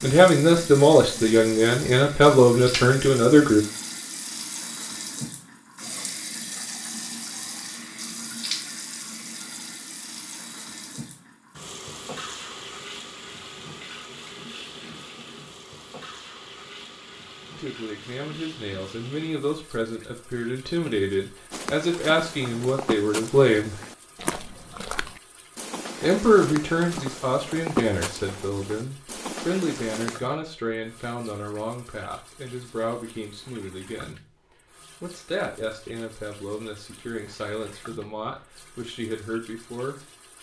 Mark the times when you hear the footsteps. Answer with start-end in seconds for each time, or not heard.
21.5-30.2.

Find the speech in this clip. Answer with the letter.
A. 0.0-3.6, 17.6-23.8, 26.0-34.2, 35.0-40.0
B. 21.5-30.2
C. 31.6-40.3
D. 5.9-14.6
A.